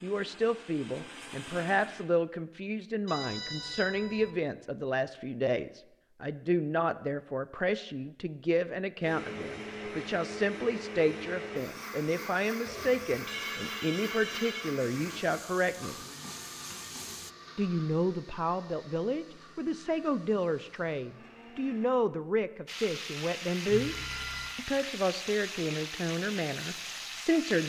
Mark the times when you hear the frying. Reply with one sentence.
You can hear the frying from 14.8 to 17.3 s and from 22.6 to 27.6 s.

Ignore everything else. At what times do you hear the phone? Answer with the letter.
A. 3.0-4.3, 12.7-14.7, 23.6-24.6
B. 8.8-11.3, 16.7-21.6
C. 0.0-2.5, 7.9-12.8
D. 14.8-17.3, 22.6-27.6
A.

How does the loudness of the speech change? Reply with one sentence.
The volume of the speech stays about the same.